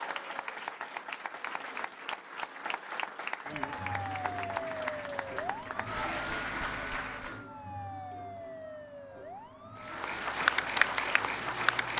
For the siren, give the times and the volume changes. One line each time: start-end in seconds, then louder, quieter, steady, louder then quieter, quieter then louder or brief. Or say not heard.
3.5-11.9 quieter.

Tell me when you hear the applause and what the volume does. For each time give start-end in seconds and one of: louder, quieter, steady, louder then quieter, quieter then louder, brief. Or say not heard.
0.0-7.5 steady
9.8-11.9 brief.